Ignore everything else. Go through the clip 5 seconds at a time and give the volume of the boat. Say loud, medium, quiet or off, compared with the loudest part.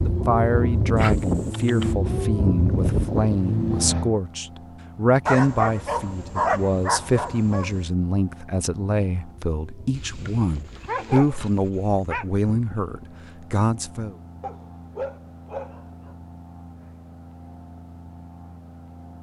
loud, quiet, quiet, quiet.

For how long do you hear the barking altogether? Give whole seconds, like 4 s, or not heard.
8 s.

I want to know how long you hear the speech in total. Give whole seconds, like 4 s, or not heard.
14 s.